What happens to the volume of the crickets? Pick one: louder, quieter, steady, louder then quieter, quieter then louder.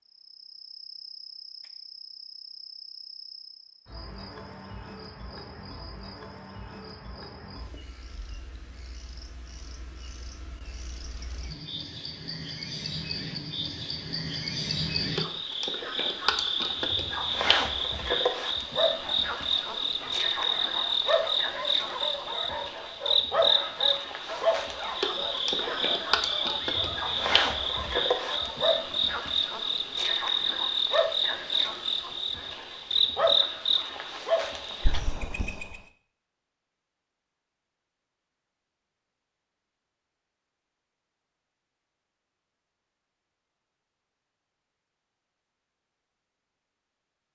louder.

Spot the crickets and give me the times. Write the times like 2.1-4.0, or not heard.
0.1-35.8.